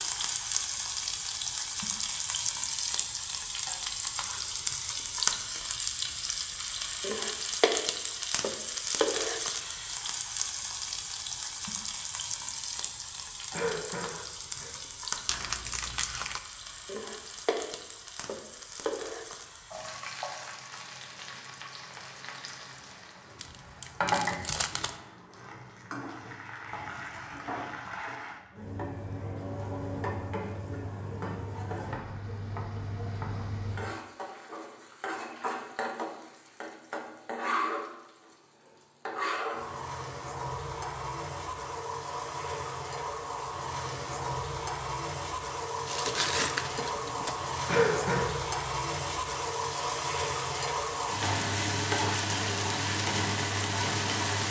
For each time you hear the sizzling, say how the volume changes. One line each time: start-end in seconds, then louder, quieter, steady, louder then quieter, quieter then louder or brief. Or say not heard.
0.0-54.4 quieter then louder.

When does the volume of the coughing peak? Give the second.
48 s.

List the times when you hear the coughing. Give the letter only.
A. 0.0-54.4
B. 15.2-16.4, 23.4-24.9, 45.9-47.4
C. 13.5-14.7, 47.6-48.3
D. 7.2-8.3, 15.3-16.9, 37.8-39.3
C.